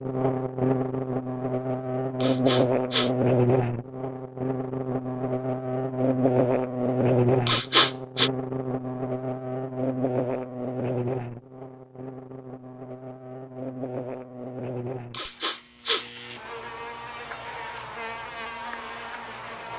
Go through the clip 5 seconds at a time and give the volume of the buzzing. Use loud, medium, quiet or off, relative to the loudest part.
loud, loud, medium, quiet.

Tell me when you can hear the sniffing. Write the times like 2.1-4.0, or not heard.
2.2-3.1, 7.5-8.3, 15.1-16.1.